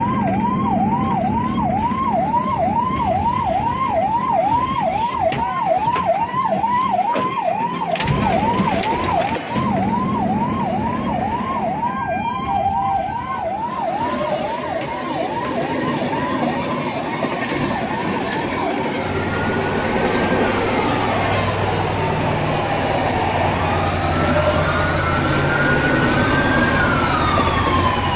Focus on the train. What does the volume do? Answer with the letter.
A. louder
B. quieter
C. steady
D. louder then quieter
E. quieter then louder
A.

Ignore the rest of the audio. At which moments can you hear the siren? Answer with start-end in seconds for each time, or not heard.
0.0-28.1.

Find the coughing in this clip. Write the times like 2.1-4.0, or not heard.
not heard.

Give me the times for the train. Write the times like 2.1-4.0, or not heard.
0.2-28.1.